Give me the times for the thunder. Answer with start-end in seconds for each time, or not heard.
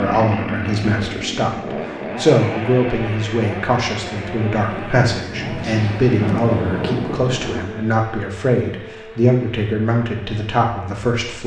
4.5-7.8.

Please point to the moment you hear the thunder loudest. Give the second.
6 s.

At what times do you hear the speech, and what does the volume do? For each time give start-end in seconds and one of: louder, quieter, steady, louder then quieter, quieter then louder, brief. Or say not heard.
0.0-11.4 steady.